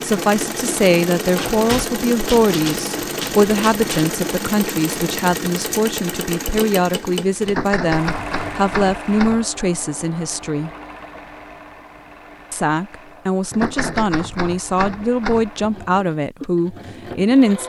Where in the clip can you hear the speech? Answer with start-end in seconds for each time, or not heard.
0.0-10.7, 12.5-17.6.